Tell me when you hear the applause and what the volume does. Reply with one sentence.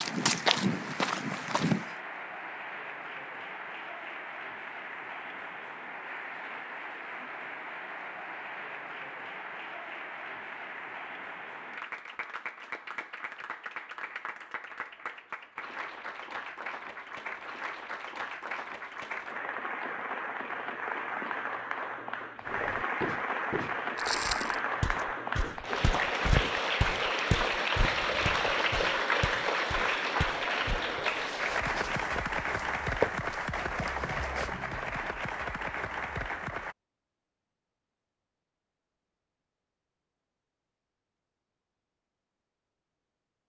The applause can be heard from 0.0 to 36.8 s, getting louder.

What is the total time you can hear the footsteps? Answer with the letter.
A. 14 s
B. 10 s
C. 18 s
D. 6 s
A.